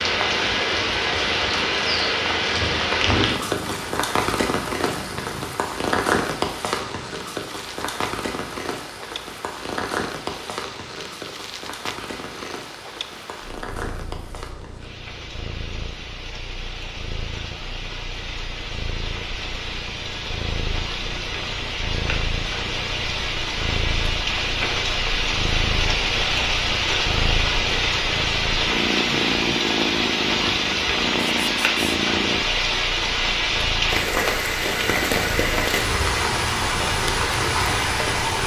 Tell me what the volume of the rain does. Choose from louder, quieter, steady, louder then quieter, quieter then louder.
quieter then louder.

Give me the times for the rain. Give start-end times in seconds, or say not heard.
0.0-38.4.